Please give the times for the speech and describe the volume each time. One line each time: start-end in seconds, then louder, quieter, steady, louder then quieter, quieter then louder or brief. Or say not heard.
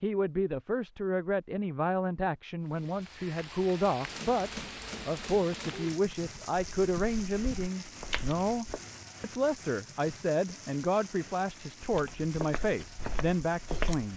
0.0-14.1 steady.